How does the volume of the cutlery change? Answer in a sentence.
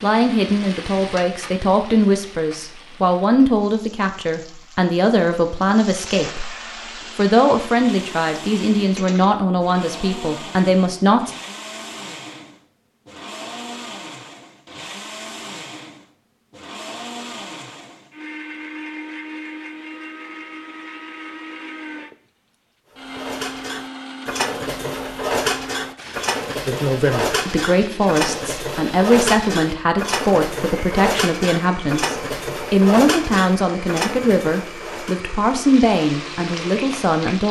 The volume of the cutlery stays about the same.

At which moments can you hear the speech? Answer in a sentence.
You can hear the speech from 0.0 to 6.5 s, from 7.2 to 11.3 s and from 26.6 to 37.4 s.